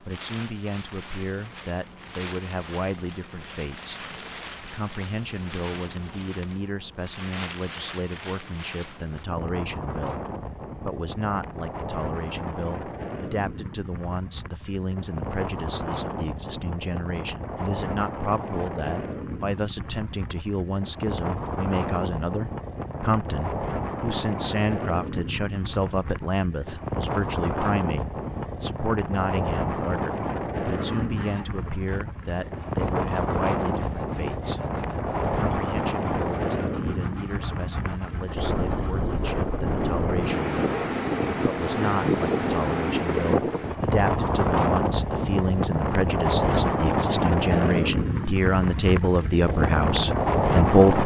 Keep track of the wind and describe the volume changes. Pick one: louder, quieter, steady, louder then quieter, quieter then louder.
louder.